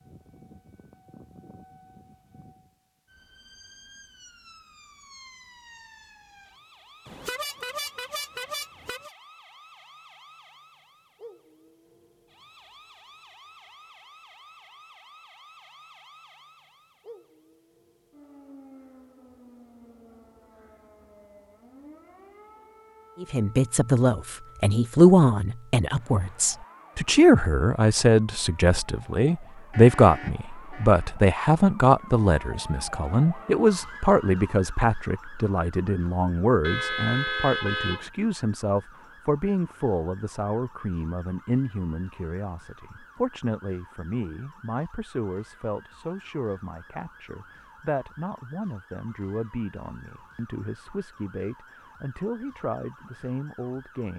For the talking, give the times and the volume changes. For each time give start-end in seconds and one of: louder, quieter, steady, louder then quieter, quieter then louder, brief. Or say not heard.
23.2-54.1 quieter.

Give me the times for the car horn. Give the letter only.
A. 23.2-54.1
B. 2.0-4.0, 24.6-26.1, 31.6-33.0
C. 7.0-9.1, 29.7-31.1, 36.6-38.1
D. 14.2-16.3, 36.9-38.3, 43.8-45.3
C.